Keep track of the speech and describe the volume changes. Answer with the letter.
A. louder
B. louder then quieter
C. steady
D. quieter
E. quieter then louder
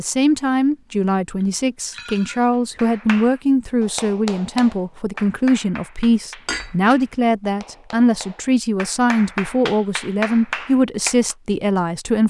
C.